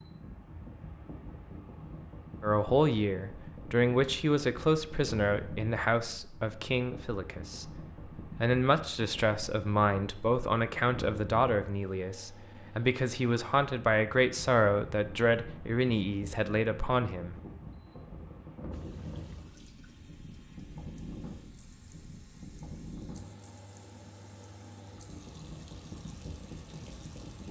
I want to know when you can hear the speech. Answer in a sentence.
The speech can be heard from 2.4 to 17.4 s.